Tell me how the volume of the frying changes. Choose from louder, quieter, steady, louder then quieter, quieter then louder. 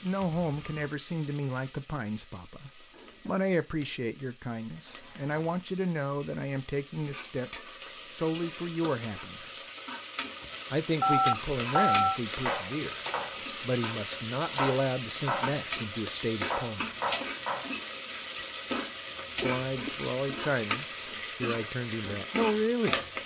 louder.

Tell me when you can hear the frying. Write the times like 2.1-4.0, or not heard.
0.0-23.2.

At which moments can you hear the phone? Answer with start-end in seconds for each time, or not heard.
0.4-0.9, 11.0-12.2, 19.4-19.9.